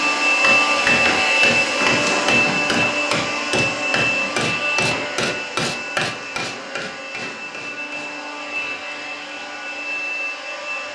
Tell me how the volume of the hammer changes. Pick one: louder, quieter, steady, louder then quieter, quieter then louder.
quieter.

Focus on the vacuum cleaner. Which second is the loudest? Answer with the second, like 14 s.
1 s.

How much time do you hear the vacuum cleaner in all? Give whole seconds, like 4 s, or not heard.
11 s.